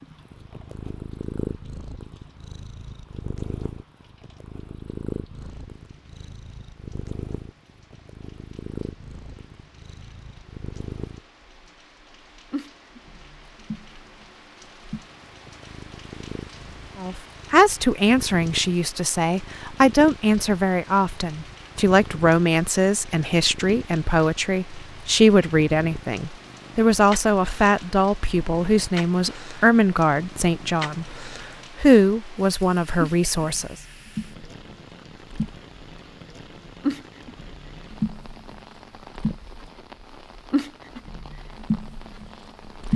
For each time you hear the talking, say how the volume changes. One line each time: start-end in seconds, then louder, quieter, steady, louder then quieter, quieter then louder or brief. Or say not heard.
16.9-31.1 steady
31.8-33.8 brief.